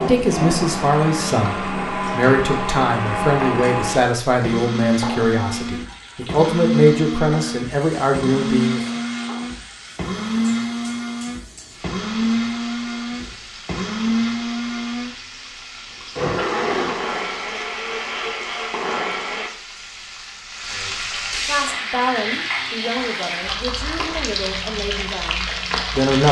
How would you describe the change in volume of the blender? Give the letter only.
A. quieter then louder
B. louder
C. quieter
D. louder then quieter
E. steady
E.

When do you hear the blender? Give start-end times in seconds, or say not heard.
0.0-19.5.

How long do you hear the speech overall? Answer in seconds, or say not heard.
14 s.